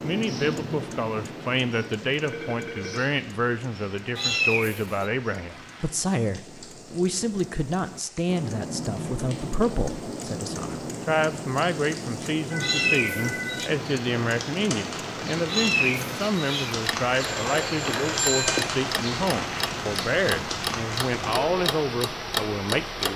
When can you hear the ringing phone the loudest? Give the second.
18 s.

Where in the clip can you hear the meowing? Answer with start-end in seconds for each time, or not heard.
4.2-5.1, 12.6-13.7, 15.4-16.8.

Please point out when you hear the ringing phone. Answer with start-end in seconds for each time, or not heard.
2.2-3.0, 12.5-13.6, 17.1-18.6.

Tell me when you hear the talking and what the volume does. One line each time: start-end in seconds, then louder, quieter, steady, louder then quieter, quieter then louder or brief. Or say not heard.
0.0-23.1 steady.